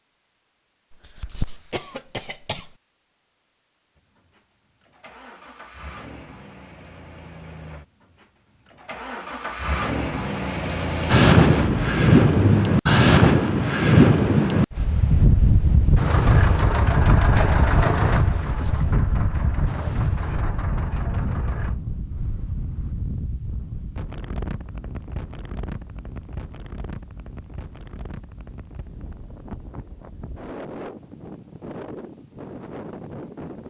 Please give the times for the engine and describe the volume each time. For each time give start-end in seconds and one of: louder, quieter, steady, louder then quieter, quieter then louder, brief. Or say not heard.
4.0-12.7 louder
15.9-21.8 quieter.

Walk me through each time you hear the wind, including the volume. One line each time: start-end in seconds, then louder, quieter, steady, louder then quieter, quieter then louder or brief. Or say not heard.
11.1-33.6 quieter.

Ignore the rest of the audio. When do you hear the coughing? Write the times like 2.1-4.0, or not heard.
0.9-2.7, 18.4-18.9.